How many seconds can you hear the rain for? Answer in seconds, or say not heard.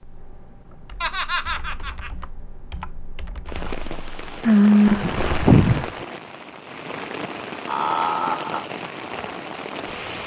7 s.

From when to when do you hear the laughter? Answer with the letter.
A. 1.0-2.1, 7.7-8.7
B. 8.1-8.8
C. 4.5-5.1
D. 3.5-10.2
A.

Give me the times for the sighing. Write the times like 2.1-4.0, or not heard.
4.5-5.1.